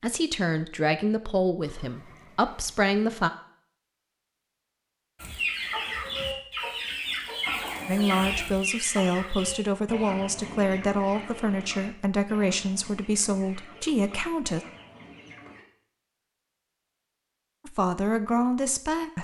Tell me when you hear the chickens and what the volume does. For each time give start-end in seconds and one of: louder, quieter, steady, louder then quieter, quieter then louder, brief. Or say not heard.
5.2-15.7 quieter.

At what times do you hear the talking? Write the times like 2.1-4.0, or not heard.
0.0-3.3, 7.8-14.7, 17.6-19.1.